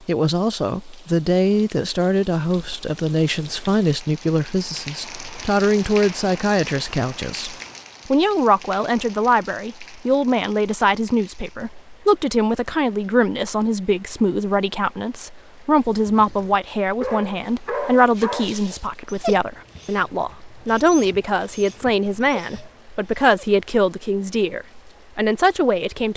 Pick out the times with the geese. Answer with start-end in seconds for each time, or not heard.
not heard.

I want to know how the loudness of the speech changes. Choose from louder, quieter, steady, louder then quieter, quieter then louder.
steady.